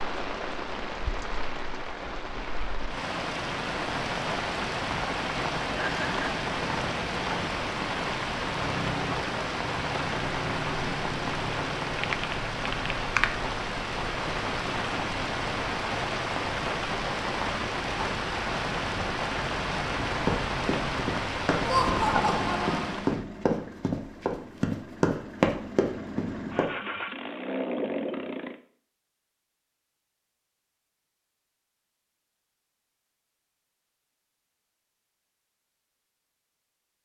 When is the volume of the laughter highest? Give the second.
22 s.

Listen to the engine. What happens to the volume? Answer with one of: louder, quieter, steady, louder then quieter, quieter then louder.
quieter then louder.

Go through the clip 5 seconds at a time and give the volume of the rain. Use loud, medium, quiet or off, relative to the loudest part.
loud, loud, loud, loud, loud, off, off, off.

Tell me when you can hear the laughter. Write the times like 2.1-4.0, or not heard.
5.8-6.4, 21.6-22.9.